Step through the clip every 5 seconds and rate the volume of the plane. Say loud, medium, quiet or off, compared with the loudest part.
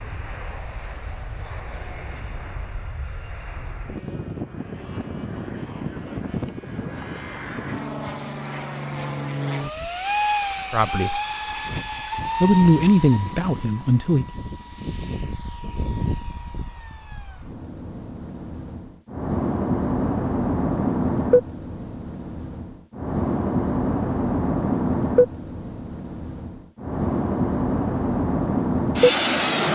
quiet, medium, medium, medium, loud, loud.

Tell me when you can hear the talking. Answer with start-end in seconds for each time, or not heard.
10.7-11.2, 12.4-14.2.